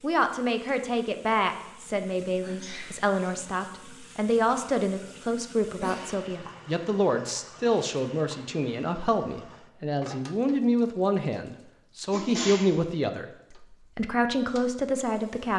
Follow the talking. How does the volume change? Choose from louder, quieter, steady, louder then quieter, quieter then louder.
steady.